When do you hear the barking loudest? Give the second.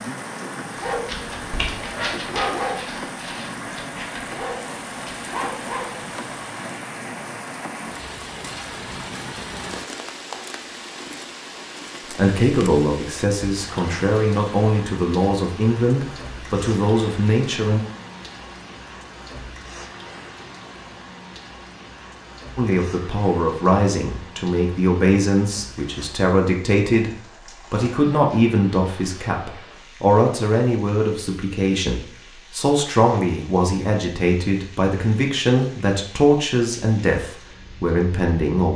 3 s.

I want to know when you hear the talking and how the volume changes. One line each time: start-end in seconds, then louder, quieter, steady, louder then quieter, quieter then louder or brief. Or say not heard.
12.2-17.8 steady
22.6-38.7 steady.